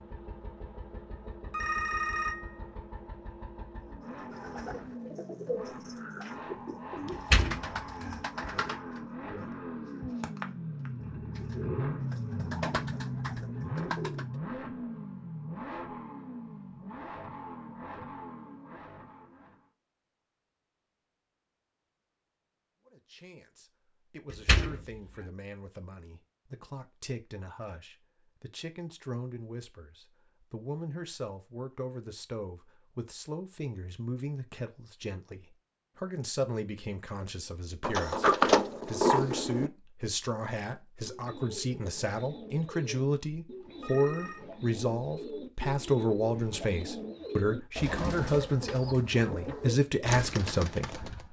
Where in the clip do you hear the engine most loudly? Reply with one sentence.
The loudest moment of the engine is at 12 seconds.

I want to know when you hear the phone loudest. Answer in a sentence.
The volume of the phone peaks at 2 seconds.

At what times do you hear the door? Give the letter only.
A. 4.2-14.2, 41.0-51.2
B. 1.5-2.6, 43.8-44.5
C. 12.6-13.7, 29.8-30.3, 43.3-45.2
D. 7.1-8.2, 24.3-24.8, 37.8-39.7
D.